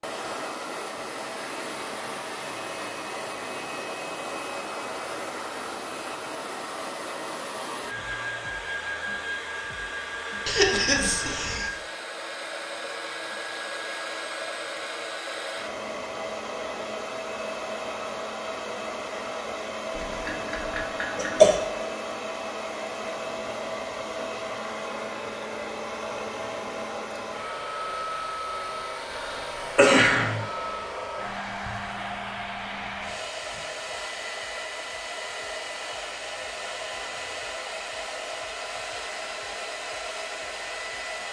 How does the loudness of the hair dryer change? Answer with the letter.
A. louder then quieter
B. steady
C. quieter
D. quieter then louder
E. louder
B.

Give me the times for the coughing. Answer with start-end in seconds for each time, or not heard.
10.4-11.7, 19.9-21.6, 29.1-30.4.